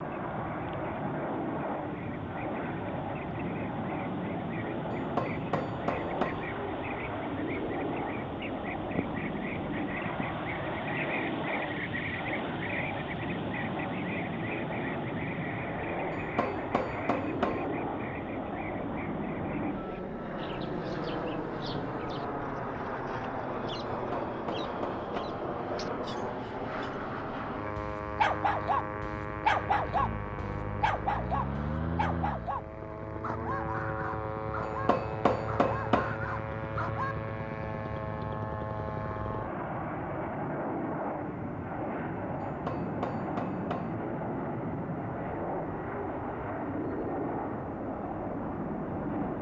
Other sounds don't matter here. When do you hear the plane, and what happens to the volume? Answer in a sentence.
The plane can be heard from 0.0 to 49.3 s, at a steady volume.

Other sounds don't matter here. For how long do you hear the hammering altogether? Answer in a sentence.
The hammering can be heard for 8 seconds in total.